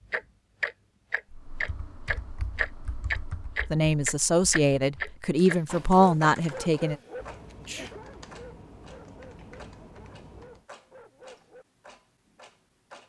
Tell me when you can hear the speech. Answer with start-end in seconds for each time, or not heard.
3.7-7.0.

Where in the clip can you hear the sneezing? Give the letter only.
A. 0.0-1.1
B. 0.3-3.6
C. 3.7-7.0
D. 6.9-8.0
D.